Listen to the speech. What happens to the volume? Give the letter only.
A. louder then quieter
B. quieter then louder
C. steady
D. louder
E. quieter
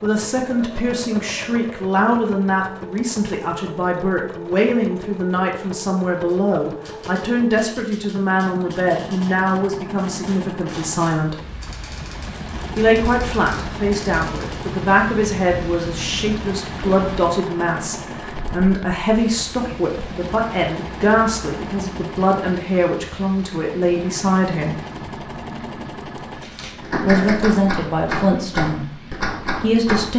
C.